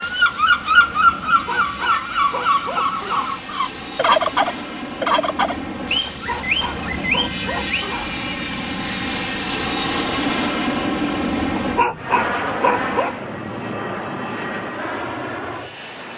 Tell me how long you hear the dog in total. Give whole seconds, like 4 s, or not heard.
6 s.